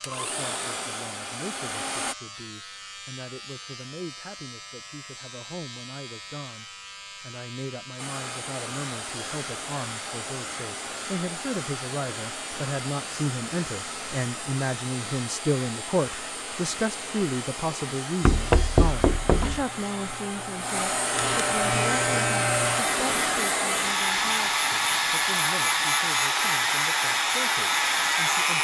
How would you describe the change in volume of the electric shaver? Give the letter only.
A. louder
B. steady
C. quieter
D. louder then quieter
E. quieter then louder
A.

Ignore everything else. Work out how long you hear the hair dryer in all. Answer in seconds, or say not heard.
23 s.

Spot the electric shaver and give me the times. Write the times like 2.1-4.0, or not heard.
0.0-28.6.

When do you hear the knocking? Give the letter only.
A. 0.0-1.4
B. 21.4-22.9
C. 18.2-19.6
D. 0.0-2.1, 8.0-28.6
C.